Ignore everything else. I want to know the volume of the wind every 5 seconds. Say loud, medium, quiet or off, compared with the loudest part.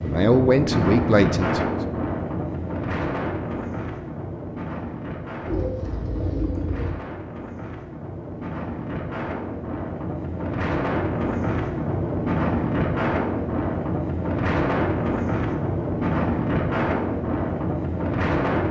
loud, medium, loud, loud.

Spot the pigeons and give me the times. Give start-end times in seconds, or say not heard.
5.5-7.0.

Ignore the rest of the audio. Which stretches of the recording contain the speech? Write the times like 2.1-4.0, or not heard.
0.0-1.7.